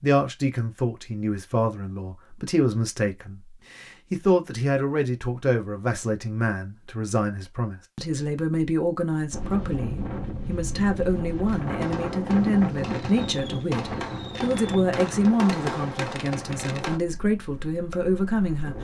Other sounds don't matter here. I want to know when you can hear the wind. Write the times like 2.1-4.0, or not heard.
9.3-18.8.